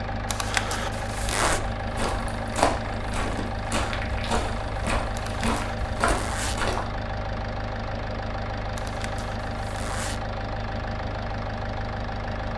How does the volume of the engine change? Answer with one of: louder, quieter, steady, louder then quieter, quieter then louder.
steady.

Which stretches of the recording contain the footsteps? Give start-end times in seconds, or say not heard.
1.3-6.9.